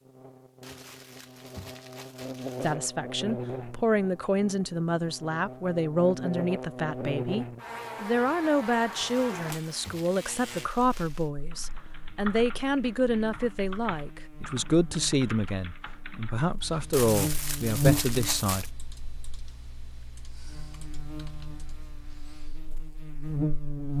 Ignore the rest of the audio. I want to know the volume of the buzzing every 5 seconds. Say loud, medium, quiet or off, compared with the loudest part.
medium, medium, quiet, loud, loud.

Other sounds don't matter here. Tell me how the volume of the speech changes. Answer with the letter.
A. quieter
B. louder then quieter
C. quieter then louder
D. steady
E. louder
D.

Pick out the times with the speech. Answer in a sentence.
The speech can be heard from 2.6 to 18.7 s.